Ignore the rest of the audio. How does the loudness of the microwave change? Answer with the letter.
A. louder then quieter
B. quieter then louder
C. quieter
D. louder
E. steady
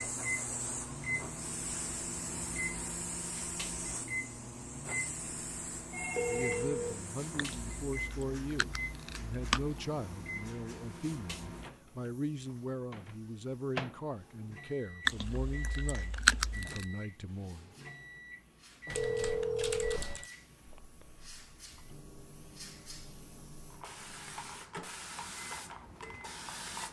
C.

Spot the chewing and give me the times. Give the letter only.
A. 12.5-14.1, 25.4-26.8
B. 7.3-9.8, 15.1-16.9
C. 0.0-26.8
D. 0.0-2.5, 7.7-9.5
B.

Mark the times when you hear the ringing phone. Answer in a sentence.
You can hear the ringing phone from 5.9 to 7.5 s and from 18.9 to 20.2 s.